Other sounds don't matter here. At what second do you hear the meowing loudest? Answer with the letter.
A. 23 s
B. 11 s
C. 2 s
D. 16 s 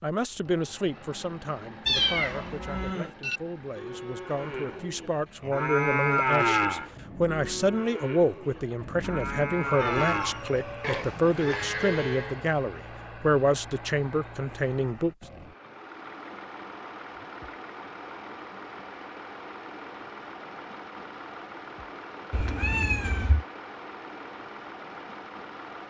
C.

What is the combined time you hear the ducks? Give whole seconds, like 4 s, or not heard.
not heard.